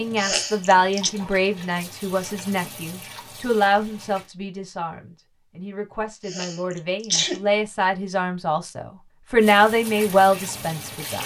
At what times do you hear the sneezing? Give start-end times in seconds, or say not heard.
0.1-1.1, 6.2-7.5.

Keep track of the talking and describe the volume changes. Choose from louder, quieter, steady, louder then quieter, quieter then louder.
quieter then louder.